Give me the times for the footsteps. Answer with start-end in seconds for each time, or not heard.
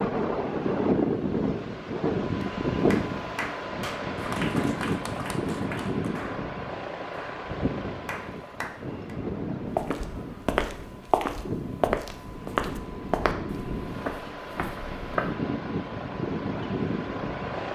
9.8-15.3.